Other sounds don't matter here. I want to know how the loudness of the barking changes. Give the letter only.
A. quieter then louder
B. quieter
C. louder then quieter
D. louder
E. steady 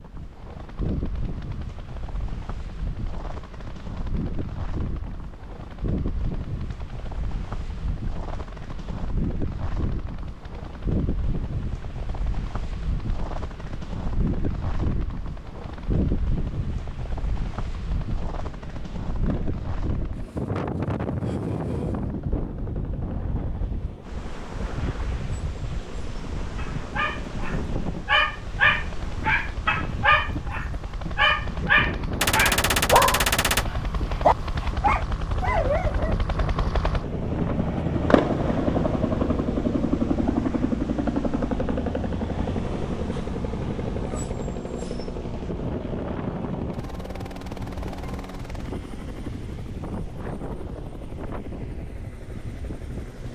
E.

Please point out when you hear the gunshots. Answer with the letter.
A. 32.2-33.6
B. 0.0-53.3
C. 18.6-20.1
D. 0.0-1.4
A.